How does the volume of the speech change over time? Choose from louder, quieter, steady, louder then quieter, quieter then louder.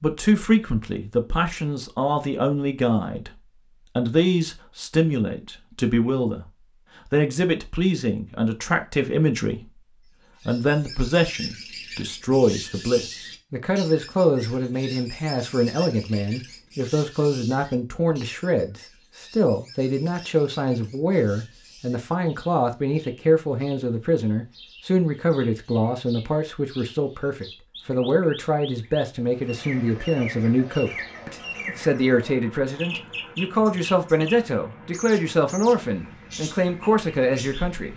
steady.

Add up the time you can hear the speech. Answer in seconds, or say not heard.
37 s.